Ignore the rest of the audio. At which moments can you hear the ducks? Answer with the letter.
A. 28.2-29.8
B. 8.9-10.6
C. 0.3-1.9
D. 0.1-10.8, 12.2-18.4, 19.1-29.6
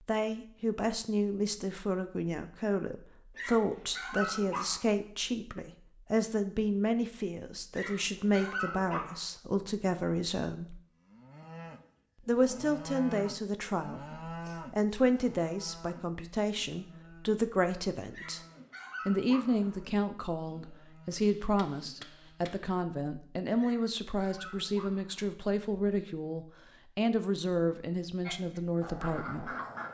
A.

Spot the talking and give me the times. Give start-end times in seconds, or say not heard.
0.1-10.8, 12.2-18.4, 19.1-29.6.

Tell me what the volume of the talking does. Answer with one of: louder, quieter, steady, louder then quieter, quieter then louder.
steady.